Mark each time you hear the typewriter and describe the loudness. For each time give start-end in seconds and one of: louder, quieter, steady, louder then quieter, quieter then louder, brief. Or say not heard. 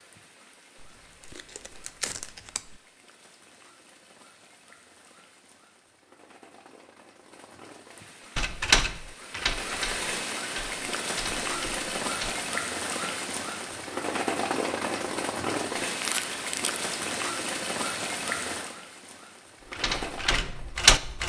8.3-12.3 quieter
19.7-21.2 brief.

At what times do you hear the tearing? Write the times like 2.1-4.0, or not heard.
0.8-2.8, 16.0-16.8.